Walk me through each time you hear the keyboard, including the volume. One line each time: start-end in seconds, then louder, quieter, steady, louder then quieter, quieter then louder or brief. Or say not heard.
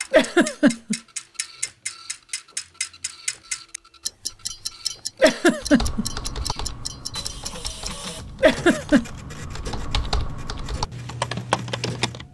5.6-12.2 quieter then louder.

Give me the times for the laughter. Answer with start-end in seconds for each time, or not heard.
0.1-0.9, 5.2-6.0, 8.4-9.1.